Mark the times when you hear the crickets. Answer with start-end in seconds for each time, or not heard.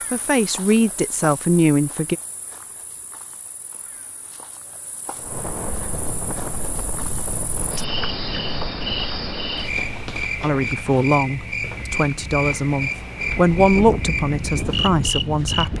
0.0-15.7.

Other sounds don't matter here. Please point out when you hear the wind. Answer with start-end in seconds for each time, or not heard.
5.2-15.7.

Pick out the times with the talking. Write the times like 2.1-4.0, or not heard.
0.1-2.1, 10.4-15.7.